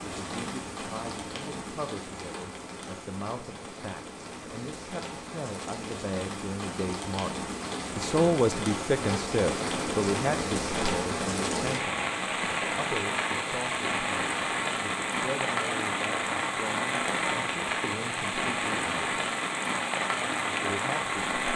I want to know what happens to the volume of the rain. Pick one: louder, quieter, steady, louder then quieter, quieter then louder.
louder.